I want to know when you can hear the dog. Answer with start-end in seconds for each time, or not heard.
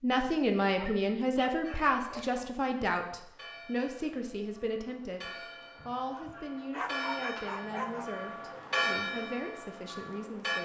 0.8-2.5, 5.8-8.1.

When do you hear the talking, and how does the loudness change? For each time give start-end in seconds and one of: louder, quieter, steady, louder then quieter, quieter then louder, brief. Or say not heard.
0.0-10.6 quieter.